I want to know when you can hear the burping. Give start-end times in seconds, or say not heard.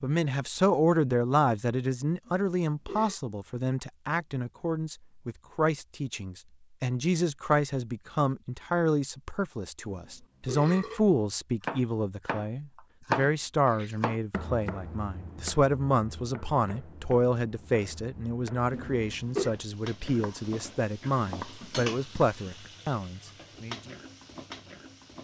2.2-3.1, 9.8-11.0, 18.7-19.5.